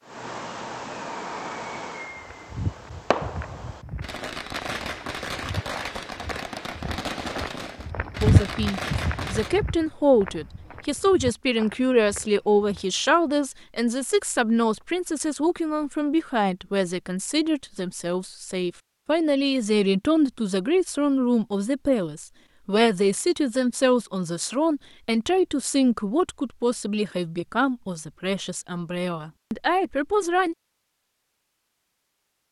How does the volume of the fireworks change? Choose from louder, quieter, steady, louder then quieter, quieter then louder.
steady.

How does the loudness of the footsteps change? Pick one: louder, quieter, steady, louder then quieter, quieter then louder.
louder then quieter.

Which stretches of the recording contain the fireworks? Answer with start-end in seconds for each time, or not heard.
0.0-9.6.